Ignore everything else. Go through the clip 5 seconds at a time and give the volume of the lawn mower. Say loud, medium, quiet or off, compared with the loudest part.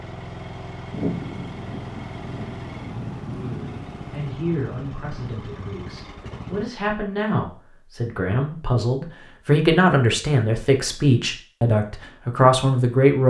loud, loud, off.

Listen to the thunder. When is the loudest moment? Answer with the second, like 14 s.
1 s.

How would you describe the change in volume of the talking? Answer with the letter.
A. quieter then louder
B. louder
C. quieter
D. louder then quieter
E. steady
B.